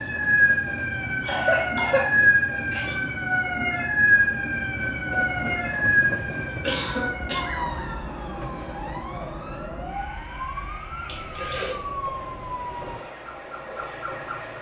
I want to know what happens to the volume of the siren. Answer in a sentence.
The volume of the siren goes down.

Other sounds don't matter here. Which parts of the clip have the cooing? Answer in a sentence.
The cooing can't be heard in this clip.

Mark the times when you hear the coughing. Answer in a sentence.
You can hear the coughing from 1.0 to 3.0 s, from 6.5 to 7.5 s and from 11.1 to 11.8 s.